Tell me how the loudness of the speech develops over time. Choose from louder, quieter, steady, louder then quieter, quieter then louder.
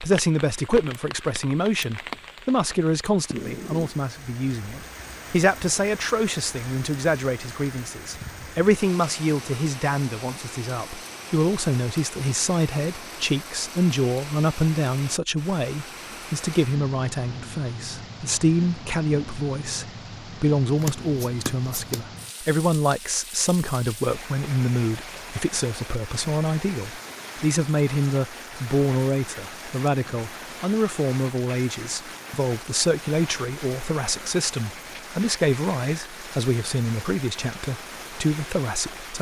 steady.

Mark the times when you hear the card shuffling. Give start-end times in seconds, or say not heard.
20.8-22.0.